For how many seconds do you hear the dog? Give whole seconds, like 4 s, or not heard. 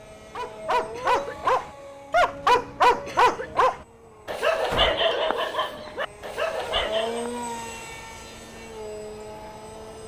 7 s.